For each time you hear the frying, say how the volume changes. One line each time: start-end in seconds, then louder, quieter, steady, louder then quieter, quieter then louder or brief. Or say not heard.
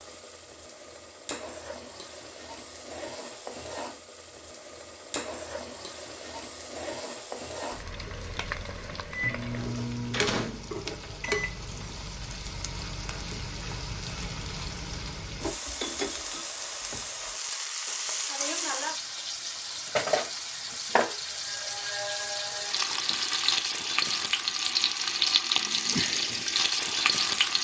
0.0-27.5 louder.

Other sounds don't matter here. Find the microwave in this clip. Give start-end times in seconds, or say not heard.
9.1-12.1.